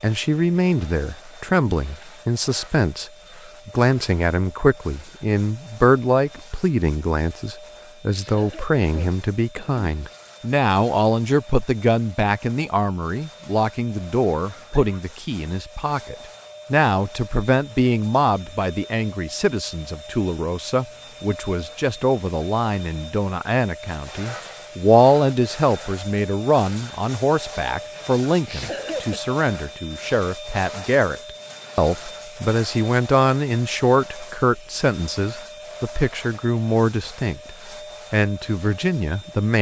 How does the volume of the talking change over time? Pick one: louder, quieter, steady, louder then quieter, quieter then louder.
steady.